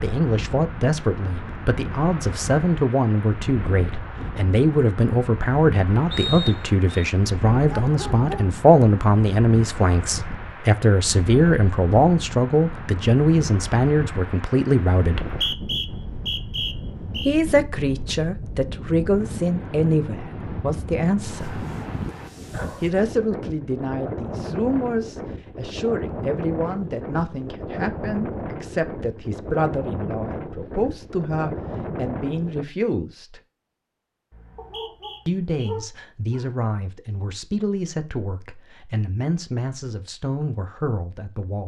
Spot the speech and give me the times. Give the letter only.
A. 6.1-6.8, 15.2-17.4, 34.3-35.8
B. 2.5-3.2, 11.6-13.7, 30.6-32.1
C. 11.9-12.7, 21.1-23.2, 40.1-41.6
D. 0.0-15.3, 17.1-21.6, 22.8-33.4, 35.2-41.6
D.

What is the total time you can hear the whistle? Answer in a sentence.
You can hear the whistle for 4 seconds altogether.